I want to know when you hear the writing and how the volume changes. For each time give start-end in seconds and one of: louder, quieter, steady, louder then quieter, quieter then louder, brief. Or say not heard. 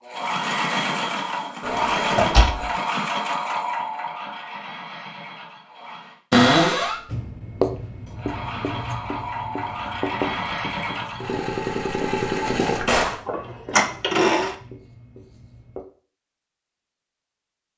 7.1-15.8 quieter.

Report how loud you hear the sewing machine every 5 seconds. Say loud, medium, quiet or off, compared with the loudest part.
loud, medium, loud, off.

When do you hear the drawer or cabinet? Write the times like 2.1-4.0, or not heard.
1.6-2.6, 6.3-7.0, 12.4-13.2.